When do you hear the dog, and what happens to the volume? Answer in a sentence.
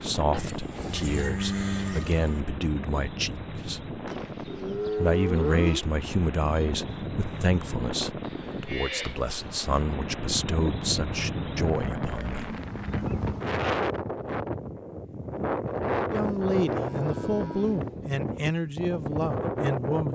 You can't hear the dog here.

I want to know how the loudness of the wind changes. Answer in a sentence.
The volume of the wind goes up.